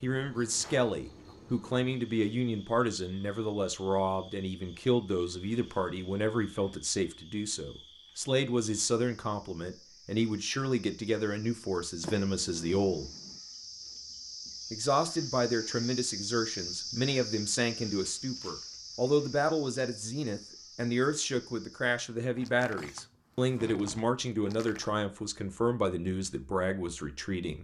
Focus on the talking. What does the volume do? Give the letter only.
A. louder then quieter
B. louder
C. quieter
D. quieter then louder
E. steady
E.